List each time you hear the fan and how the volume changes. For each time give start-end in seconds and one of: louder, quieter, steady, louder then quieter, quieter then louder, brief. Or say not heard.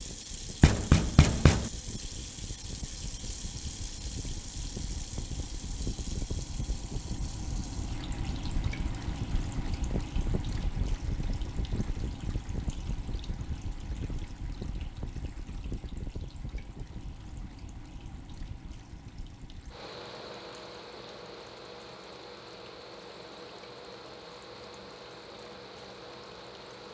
0.0-26.9 louder then quieter.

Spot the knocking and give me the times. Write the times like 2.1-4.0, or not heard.
0.6-1.7.